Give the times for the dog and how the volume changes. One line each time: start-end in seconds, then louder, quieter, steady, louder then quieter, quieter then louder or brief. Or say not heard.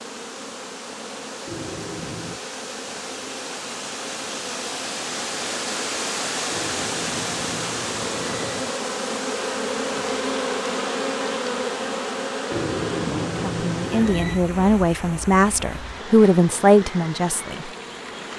not heard.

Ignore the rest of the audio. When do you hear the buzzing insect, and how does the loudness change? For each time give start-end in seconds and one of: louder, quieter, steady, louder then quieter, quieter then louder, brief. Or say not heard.
0.0-18.3 louder then quieter.